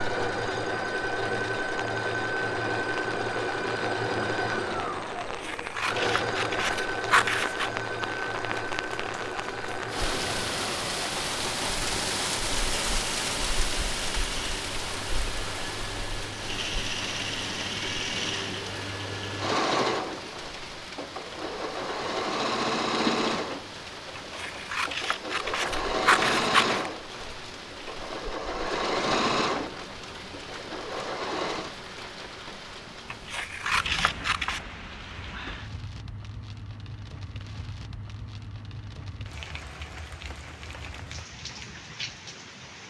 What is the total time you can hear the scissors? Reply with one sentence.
The scissors can be heard for 7 seconds in total.